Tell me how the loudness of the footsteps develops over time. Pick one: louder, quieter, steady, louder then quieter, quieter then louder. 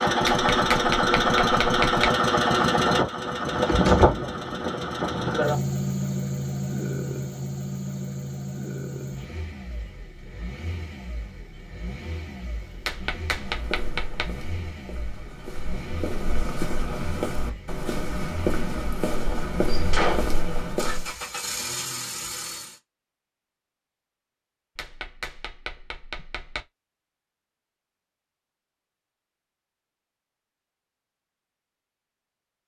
louder.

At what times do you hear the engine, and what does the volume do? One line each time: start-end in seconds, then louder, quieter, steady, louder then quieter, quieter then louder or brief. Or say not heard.
0.0-22.8 quieter then louder.